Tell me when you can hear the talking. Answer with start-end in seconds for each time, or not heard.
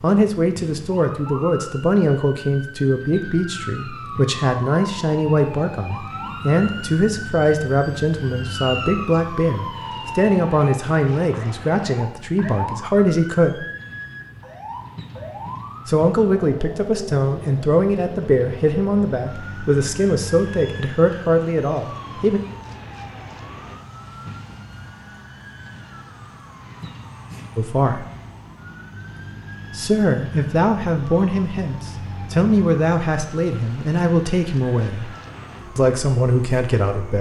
0.0-13.7, 15.8-22.4, 27.6-28.1, 29.7-35.1, 35.8-37.1.